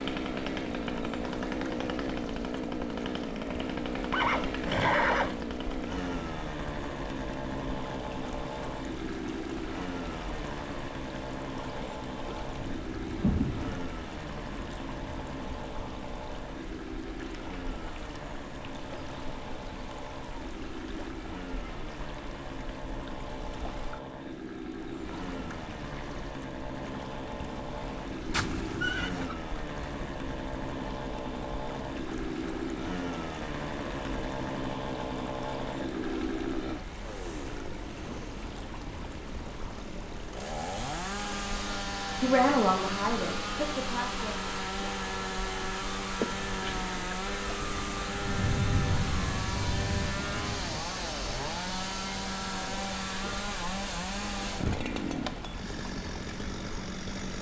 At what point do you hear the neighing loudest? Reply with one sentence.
The loudest moment of the neighing is at 5 seconds.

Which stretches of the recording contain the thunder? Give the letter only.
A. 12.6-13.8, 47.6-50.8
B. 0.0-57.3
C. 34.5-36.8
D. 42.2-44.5
A.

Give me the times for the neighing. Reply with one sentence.
You can hear the neighing from 4.1 to 5.4 s, from 28.3 to 29.4 s and from 46.2 to 47.0 s.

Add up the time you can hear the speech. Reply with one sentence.
You can hear the speech for 2 seconds altogether.